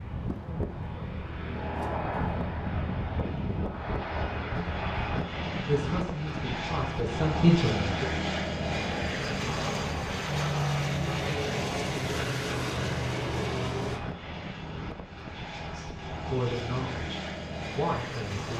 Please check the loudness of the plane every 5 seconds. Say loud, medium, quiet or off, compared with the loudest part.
loud, loud, loud, medium.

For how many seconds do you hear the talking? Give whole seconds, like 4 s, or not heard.
5 s.